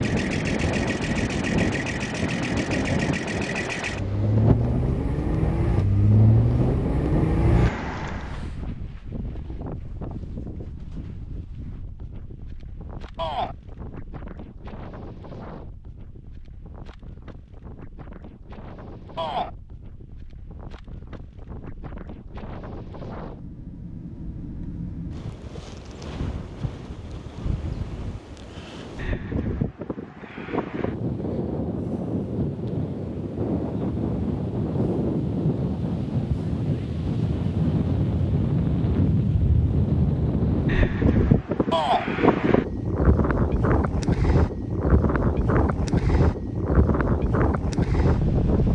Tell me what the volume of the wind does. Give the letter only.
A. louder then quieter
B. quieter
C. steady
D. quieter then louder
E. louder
D.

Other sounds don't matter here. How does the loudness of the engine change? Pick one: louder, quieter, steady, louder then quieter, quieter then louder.
louder.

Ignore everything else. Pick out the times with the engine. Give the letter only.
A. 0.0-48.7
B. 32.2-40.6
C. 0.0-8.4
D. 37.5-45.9
C.